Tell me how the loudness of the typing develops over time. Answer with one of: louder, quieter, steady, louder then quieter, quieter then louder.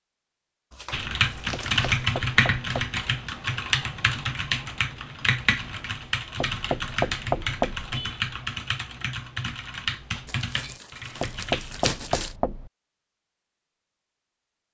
quieter.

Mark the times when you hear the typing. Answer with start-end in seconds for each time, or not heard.
0.9-12.0.